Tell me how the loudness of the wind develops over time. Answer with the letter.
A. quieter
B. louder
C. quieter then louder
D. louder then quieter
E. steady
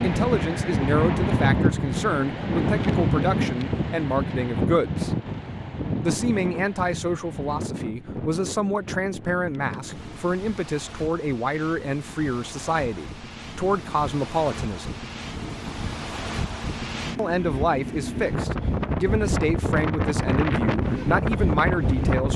C.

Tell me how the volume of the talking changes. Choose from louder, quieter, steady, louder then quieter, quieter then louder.
steady.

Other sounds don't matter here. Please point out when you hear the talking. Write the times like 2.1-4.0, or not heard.
0.0-5.1, 6.0-15.0, 17.1-22.3.